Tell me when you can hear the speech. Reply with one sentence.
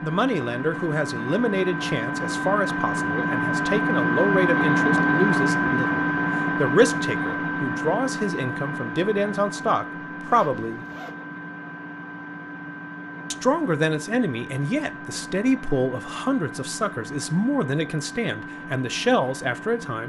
You can hear the speech from 0.0 to 10.8 s and from 13.3 to 20.0 s.